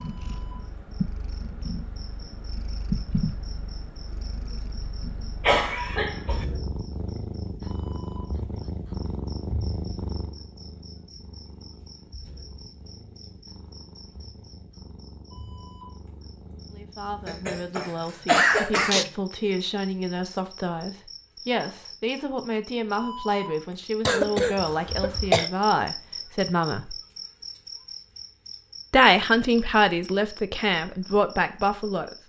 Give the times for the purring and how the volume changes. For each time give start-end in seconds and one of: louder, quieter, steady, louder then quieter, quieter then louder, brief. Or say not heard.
0.0-19.3 quieter.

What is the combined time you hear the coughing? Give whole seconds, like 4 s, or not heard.
4 s.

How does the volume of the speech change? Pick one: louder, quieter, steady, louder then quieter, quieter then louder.
louder.